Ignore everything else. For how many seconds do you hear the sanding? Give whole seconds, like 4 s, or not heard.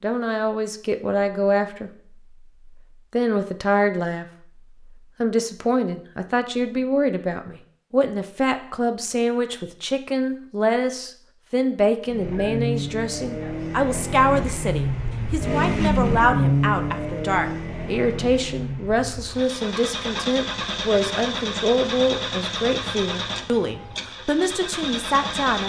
not heard.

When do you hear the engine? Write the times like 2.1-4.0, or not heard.
12.1-25.6.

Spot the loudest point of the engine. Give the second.
16 s.